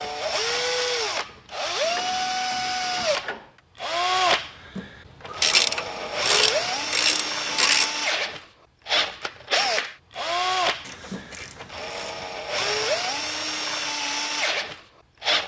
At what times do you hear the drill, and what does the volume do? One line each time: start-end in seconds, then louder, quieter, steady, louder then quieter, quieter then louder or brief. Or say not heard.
0.0-15.4 steady.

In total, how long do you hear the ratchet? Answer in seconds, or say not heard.
6 s.